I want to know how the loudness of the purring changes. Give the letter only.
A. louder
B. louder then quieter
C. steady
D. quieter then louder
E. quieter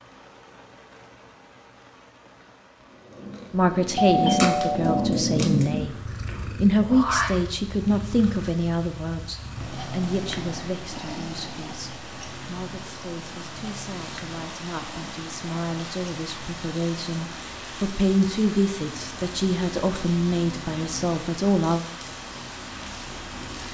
E.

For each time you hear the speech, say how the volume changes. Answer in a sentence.
The speech can be heard from 3.5 to 21.9 s, getting quieter then louder.